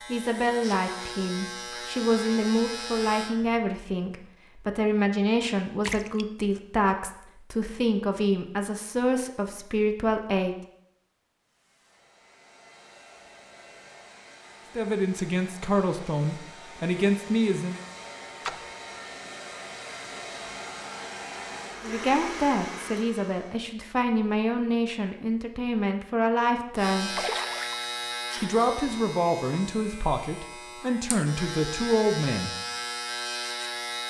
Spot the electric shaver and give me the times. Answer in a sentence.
The electric shaver can be heard from 0.0 to 3.3 s and from 26.8 to 34.0 s.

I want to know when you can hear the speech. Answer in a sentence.
The speech can be heard from 0.1 to 10.6 s, from 14.8 to 17.8 s, from 21.8 to 27.2 s and from 28.4 to 32.5 s.